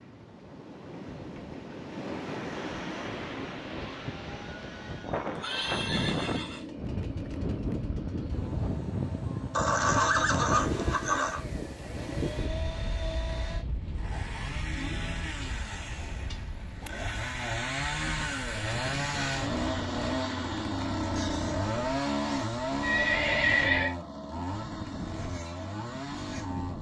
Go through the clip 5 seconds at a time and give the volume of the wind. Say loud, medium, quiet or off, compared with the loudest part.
medium, loud, loud, medium, medium, medium.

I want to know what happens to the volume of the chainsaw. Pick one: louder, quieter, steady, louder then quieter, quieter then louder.
louder.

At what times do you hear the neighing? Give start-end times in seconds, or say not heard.
5.3-6.7, 9.5-11.4, 22.8-23.9.